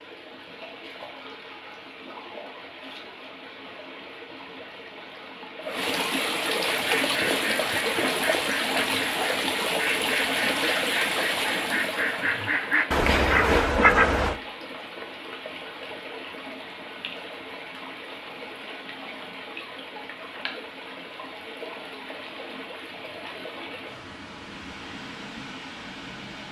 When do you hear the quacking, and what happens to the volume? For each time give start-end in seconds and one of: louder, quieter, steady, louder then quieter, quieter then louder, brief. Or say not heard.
6.7-14.3 louder.